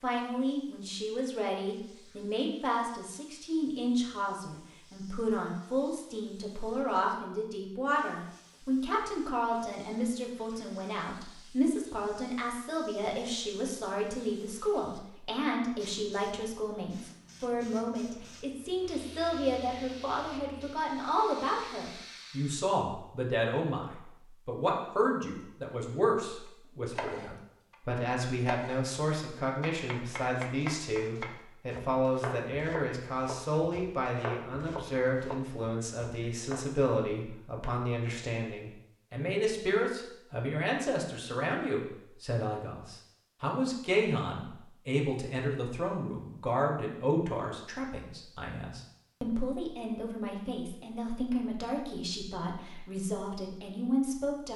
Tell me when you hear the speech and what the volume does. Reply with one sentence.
The speech can be heard from 0.0 to 54.5 s, at a steady volume.